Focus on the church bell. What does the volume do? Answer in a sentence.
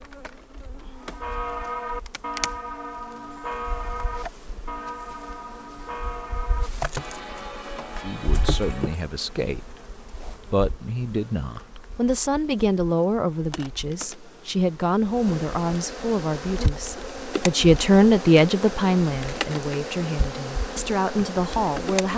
The volume of the church bell goes down.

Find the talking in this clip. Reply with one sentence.
You can hear the talking from 8.0 to 9.8 s and from 10.5 to 22.1 s.